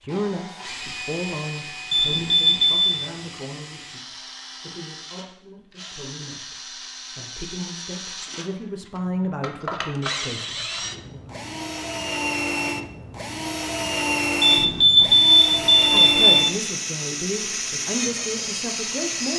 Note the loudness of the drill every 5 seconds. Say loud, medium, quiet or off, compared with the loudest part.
medium, medium, loud, loud.